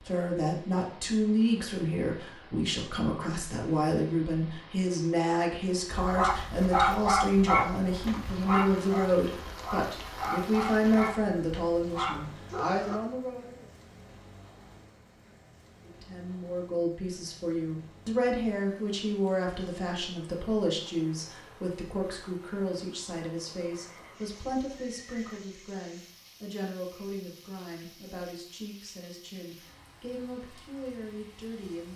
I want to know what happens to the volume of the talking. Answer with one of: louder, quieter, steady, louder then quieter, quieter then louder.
quieter.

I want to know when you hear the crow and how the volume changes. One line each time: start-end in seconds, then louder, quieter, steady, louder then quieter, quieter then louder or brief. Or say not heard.
not heard.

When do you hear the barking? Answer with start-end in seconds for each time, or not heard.
5.9-13.0.